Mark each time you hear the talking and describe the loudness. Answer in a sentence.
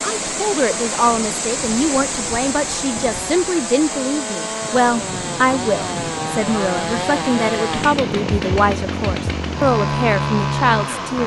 The talking can be heard from 0.0 to 11.2 s, at a steady volume.